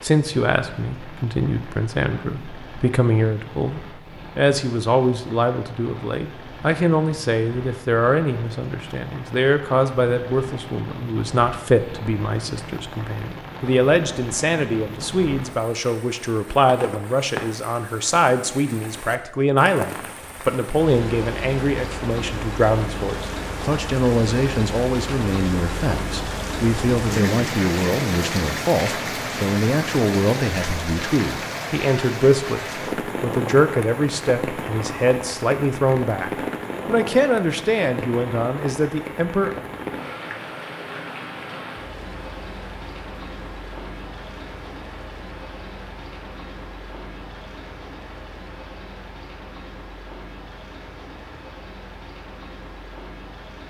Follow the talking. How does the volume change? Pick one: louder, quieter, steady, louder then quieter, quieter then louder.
steady.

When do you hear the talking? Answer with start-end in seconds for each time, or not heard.
0.0-39.5.